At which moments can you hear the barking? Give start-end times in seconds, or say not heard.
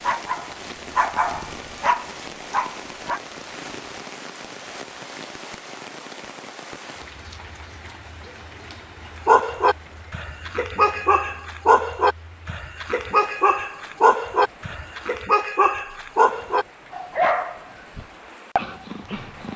0.0-3.2, 9.2-19.5.